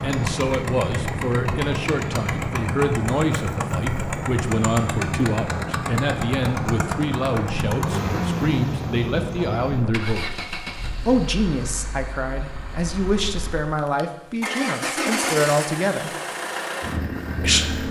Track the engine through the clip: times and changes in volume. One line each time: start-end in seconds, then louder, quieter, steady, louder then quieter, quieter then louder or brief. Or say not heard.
0.0-17.8 quieter then louder.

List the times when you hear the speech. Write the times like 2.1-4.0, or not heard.
0.0-10.2, 11.1-16.1, 17.4-17.8.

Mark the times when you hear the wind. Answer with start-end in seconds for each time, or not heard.
0.0-9.9.